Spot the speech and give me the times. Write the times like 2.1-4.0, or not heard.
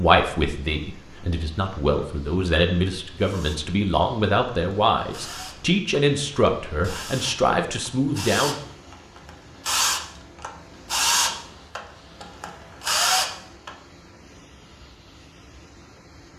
0.0-8.6.